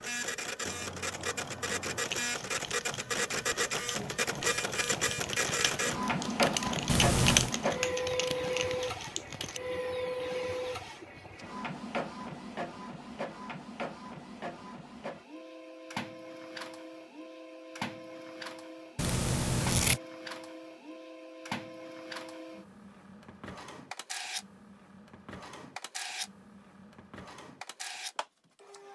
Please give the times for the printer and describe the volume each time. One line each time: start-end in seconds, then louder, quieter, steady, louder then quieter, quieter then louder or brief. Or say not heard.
0.0-28.8 quieter.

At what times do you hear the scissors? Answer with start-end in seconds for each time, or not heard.
6.8-7.5, 18.9-20.0.